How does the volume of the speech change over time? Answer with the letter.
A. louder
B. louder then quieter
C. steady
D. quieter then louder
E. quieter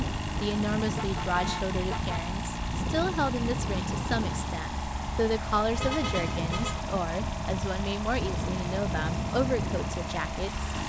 C.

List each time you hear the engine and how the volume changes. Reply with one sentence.
The engine can be heard from 0.0 to 10.8 s, at a steady volume.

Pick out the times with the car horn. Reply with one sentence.
The car horn can be heard from 0.9 to 2.1 s and from 5.8 to 6.8 s.